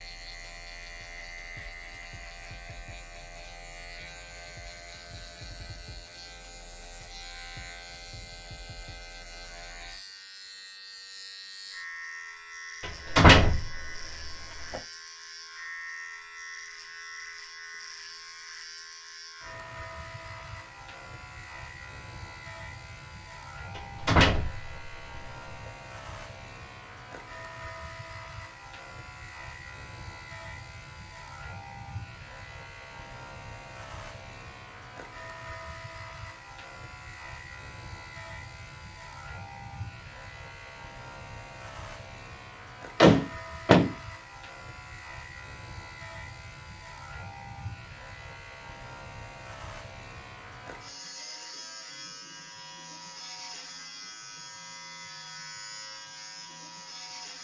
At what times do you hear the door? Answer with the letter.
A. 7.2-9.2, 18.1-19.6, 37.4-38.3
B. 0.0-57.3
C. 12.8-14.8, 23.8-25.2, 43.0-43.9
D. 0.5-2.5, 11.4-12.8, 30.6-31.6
C.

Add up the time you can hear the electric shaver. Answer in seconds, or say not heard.
57 s.